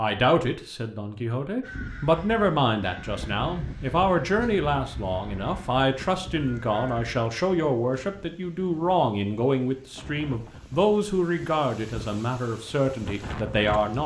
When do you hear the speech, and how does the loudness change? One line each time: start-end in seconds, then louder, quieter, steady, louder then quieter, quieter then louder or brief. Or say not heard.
0.0-14.0 steady.